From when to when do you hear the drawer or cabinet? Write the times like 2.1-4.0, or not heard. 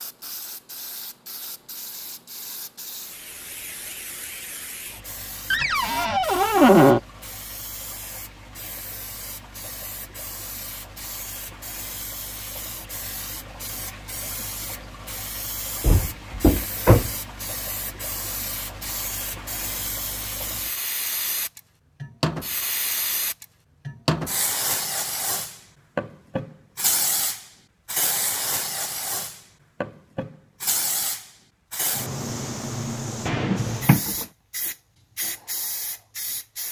5.5-7.0, 15.8-17.1, 33.2-34.2.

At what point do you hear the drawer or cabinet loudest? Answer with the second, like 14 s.
7 s.